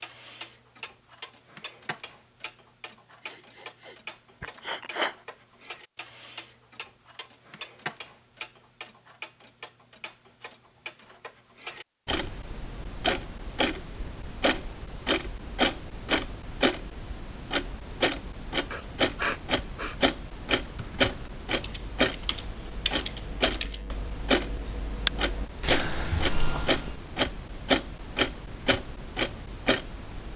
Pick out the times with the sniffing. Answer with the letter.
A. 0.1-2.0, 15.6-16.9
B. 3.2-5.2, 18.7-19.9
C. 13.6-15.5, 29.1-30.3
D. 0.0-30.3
B.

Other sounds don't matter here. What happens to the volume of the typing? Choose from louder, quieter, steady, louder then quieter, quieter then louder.
louder.